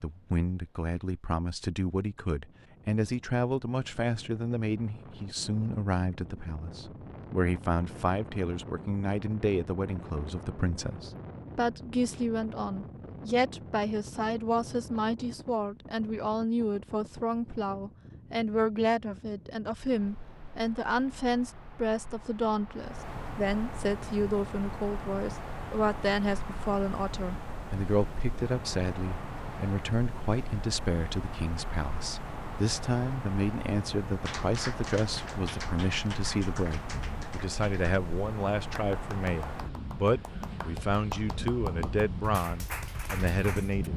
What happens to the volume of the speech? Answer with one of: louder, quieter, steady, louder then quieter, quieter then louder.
steady.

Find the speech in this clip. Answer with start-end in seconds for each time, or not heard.
0.0-43.9.